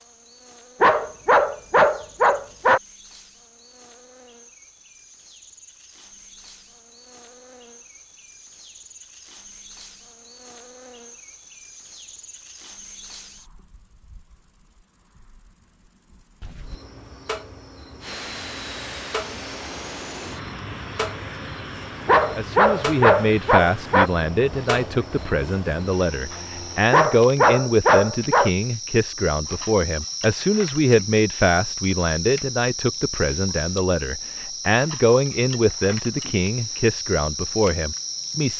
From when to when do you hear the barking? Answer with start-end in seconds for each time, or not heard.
0.8-2.8, 22.1-24.1, 26.9-28.5.